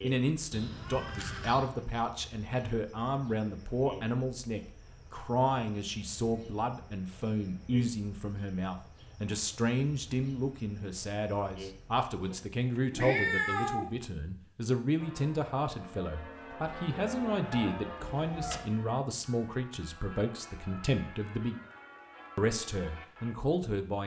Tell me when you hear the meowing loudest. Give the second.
13 s.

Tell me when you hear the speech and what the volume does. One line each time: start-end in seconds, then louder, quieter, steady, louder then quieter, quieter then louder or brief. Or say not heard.
0.0-21.6 steady
22.4-24.0 brief.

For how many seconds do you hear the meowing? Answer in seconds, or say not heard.
4 s.